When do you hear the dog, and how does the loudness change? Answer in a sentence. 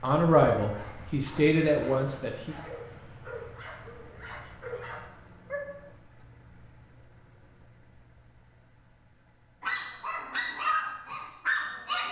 The dog can be heard from 0.0 to 5.7 s, getting louder; and briefly from 9.6 to 12.0 s.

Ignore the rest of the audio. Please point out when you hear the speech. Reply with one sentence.
The speech can be heard from 0.0 to 2.5 s.